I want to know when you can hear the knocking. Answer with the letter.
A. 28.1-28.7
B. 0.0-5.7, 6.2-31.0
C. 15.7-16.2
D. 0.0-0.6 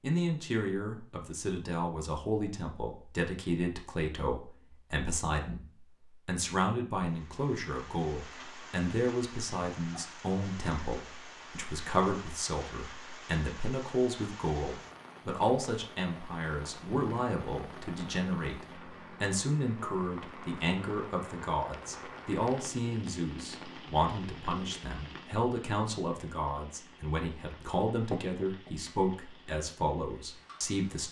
A.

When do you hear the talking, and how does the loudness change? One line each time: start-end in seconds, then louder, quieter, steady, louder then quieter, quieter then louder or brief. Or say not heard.
0.0-5.7 steady
6.2-31.0 steady.